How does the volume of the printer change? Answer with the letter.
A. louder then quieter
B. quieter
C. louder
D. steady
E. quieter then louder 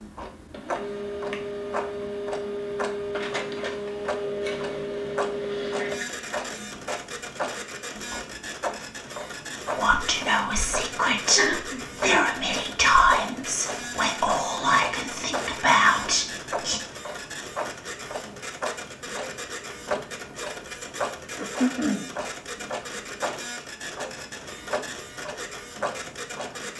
B.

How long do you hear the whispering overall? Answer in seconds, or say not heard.
7 s.